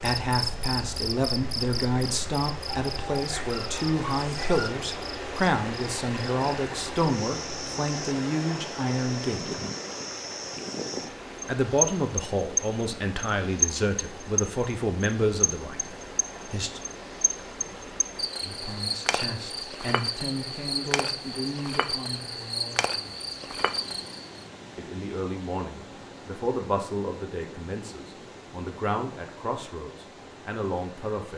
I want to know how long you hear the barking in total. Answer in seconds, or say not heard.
2 s.